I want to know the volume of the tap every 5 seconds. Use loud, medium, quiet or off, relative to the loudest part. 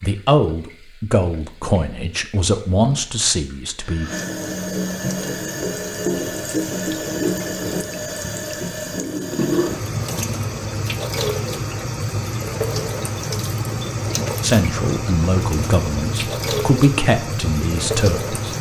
medium, loud, loud, loud.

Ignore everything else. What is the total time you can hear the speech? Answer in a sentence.
The speech can be heard for 8 seconds in total.